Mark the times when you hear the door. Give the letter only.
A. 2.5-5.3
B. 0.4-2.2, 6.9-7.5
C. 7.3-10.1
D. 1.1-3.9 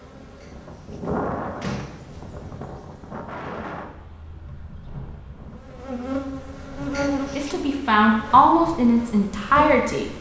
B.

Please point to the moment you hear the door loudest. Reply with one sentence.
The volume of the door peaks at 2 seconds.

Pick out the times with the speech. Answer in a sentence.
The speech can be heard from 7.3 to 10.1 s.